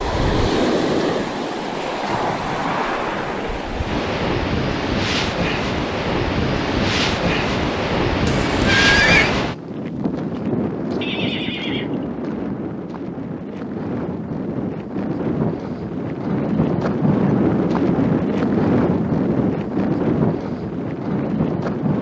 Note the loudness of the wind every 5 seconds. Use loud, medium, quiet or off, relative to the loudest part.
loud, loud, medium, loud, loud.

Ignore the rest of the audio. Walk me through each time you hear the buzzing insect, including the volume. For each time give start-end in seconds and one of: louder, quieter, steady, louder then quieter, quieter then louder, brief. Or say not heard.
not heard.